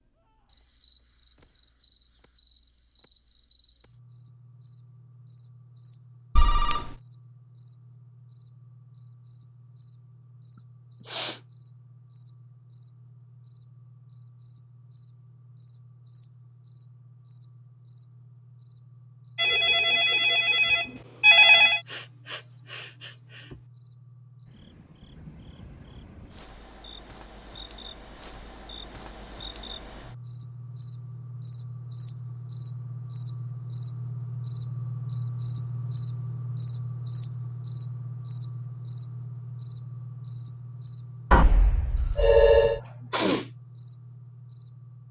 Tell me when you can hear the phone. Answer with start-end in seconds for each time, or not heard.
6.3-7.0, 19.4-21.8, 41.3-42.8.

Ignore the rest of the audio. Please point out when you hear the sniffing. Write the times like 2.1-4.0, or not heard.
10.6-11.4, 21.9-23.6, 42.6-43.5.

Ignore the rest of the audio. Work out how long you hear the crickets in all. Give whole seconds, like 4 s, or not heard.
45 s.